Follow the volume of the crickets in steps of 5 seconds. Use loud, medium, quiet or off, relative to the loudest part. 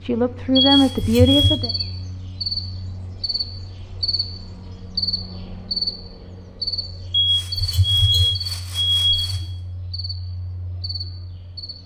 loud, loud, medium.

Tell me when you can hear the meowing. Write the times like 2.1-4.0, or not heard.
not heard.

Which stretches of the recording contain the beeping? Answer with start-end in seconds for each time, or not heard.
0.6-1.6, 7.1-9.4.